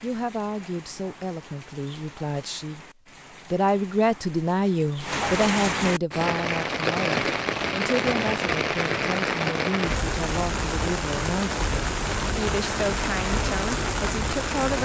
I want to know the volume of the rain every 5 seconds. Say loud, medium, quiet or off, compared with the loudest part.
quiet, loud, loud.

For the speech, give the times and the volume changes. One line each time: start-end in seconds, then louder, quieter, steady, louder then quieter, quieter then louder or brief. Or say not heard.
0.0-2.9 brief
3.5-14.8 quieter.